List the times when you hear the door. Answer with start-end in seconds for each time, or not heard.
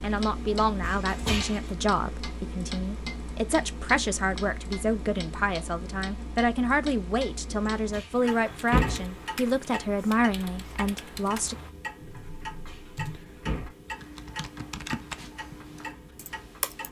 0.8-1.7, 7.9-9.2, 12.7-13.7.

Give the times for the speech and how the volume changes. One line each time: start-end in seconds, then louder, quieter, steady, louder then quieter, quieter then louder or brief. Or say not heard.
0.0-11.6 steady.